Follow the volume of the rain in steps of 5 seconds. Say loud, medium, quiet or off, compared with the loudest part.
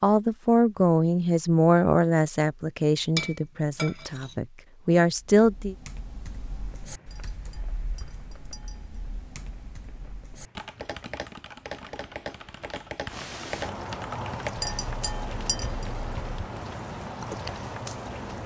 off, quiet, loud, loud.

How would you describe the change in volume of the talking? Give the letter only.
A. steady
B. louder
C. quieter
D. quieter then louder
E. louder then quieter
D.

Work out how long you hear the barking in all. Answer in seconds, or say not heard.
not heard.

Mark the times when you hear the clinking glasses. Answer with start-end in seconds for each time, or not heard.
3.1-4.3, 7.1-9.0, 14.6-15.8.